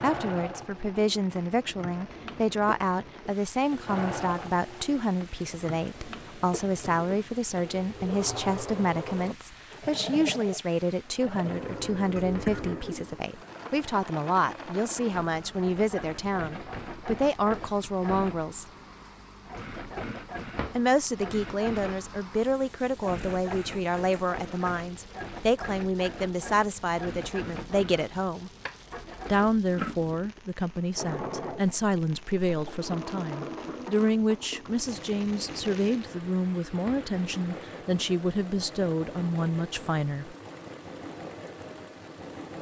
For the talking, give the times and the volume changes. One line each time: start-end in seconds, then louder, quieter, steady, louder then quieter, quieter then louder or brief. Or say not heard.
0.0-18.6 steady
20.8-28.5 steady
29.2-40.4 steady.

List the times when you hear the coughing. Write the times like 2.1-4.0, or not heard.
12.2-12.7.